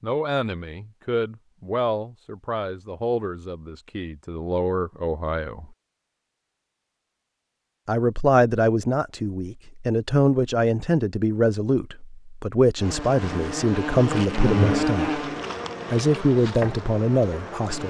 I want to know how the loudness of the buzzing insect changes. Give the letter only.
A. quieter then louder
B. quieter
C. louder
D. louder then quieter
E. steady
D.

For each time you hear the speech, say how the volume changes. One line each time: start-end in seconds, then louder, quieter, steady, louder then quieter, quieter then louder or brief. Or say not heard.
0.0-5.7 quieter then louder
7.8-15.2 steady
15.8-17.8 brief.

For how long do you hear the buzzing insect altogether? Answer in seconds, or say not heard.
5 s.